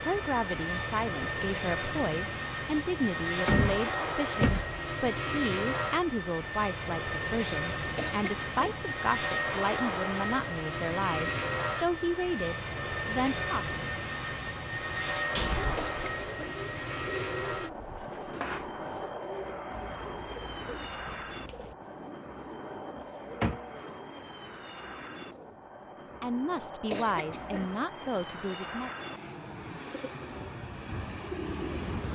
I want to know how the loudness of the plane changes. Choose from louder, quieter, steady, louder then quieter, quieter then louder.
quieter.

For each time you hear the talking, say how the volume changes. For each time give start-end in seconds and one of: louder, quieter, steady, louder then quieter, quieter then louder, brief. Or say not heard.
0.1-13.7 steady
26.2-28.9 brief.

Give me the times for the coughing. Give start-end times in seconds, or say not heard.
8.0-8.7, 15.8-16.6, 26.9-27.8.